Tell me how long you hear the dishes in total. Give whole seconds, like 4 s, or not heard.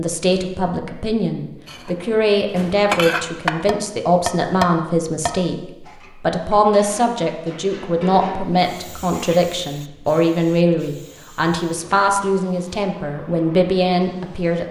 8 s.